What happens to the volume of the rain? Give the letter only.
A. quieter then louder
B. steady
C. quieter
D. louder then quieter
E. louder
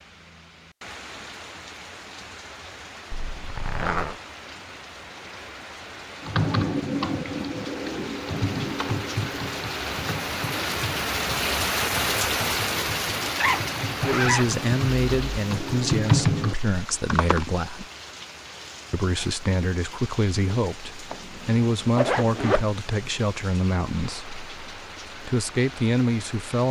D.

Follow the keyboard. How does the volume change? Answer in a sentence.
The volume of the keyboard goes down, then up.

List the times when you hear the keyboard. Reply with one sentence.
The keyboard can be heard from 6.2 to 17.5 s.